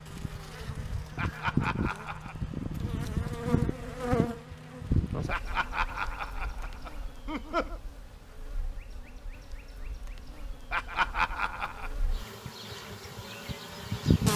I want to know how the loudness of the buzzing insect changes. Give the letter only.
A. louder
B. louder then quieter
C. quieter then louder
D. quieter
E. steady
C.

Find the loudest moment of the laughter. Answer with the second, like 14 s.
11 s.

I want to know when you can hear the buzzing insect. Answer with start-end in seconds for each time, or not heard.
0.0-14.3.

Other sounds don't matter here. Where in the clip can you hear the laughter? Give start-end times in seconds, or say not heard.
1.1-2.4, 5.2-7.8, 10.7-11.9.